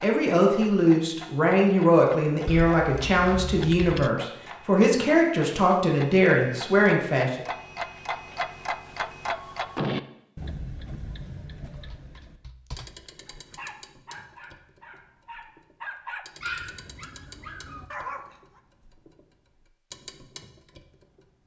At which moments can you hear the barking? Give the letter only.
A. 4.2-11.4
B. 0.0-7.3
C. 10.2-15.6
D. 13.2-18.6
D.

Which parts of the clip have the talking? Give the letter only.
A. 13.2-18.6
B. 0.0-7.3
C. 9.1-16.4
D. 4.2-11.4
B.